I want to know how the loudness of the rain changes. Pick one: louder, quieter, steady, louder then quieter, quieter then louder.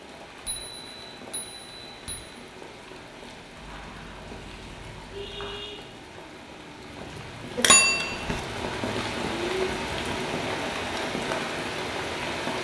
louder.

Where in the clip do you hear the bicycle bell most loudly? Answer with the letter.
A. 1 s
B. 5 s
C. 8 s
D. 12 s
C.